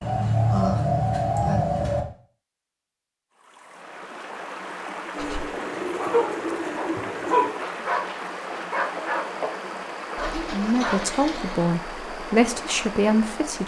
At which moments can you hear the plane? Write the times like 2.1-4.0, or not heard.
not heard.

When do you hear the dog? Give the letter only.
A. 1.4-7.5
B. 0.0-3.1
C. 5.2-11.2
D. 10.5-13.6
C.